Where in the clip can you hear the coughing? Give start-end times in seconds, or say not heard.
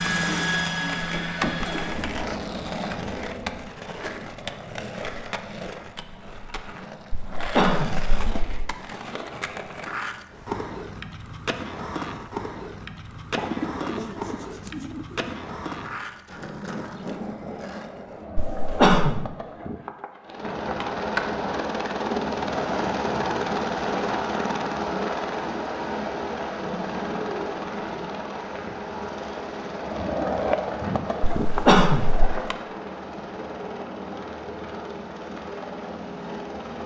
7.1-8.8, 18.4-19.2, 31.4-32.4.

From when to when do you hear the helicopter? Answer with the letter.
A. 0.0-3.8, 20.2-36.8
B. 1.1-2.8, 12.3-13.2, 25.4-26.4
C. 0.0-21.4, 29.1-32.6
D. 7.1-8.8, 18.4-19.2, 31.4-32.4
A.